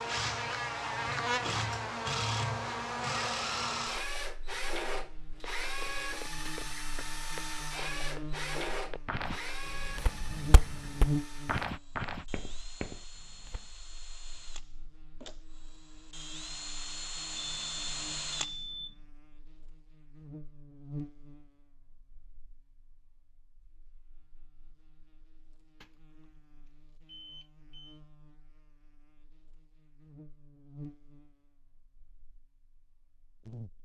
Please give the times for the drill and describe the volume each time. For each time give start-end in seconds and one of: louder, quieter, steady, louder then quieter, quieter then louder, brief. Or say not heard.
0.0-18.6 quieter then louder.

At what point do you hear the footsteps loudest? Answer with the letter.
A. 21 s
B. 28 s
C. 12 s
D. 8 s
C.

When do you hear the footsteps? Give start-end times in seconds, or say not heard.
5.2-13.7.